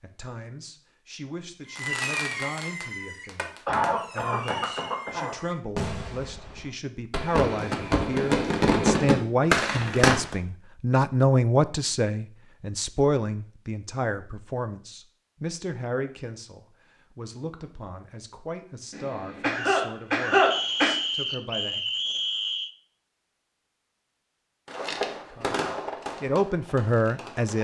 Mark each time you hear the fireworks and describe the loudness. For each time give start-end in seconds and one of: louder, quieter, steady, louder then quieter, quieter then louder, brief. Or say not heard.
1.6-10.3 quieter then louder
24.6-27.5 brief.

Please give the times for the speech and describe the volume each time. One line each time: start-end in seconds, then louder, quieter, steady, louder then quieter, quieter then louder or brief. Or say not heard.
0.0-21.8 louder then quieter
25.2-27.5 brief.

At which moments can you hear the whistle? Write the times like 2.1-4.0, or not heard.
4.4-5.0, 20.5-22.7.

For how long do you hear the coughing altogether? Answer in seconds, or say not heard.
4 s.